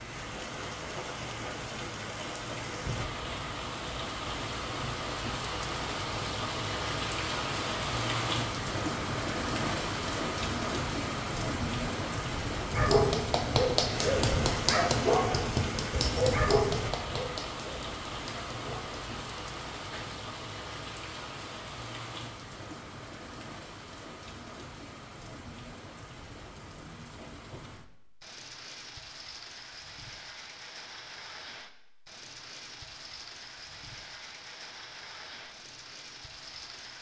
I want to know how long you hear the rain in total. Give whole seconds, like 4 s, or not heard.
37 s.